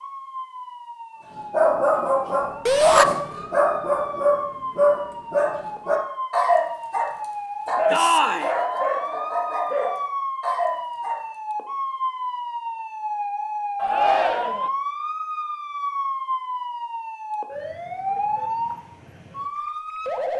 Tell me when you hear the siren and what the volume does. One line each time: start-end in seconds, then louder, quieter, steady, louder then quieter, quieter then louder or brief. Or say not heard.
0.0-20.3 louder.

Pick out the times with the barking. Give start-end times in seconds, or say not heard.
1.5-11.2.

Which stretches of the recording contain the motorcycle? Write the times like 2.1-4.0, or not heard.
not heard.